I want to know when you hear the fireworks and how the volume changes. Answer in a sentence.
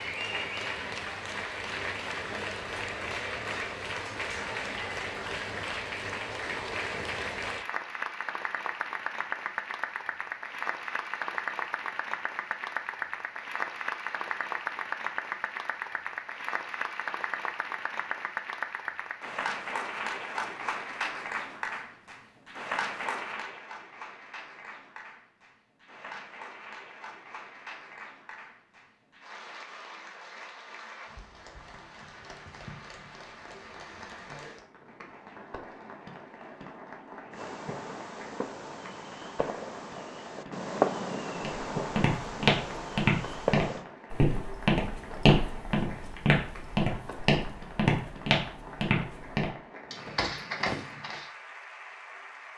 You can hear the fireworks from 37.3 to 43.9 s, getting louder then quieter.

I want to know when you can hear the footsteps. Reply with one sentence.
The footsteps can be heard from 41.4 to 51.2 s.